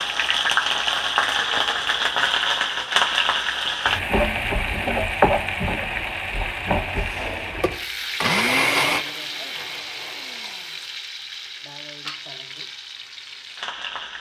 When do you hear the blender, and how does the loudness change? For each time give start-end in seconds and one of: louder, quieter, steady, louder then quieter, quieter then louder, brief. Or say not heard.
6.9-11.0 louder then quieter.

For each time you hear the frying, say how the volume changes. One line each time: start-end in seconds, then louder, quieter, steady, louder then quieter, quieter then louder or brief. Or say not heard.
0.0-14.1 quieter.